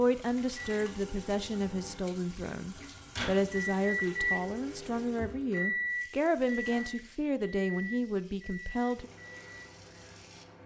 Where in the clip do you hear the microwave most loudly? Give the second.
4 s.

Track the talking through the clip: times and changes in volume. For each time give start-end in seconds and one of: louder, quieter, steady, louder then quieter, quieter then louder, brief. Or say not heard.
0.0-9.1 steady.